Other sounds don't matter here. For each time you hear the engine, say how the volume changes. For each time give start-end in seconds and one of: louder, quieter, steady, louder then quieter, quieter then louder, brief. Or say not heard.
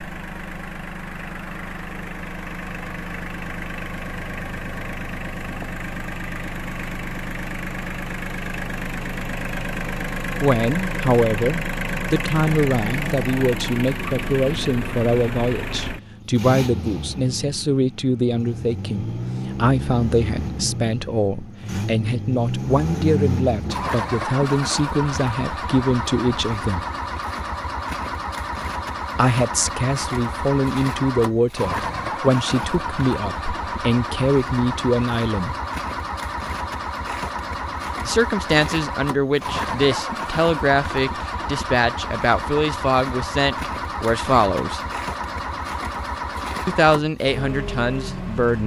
0.0-48.6 steady.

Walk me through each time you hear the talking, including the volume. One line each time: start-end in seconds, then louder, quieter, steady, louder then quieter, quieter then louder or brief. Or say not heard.
10.4-26.9 steady
29.1-35.5 steady
38.0-44.8 steady
46.6-48.6 brief.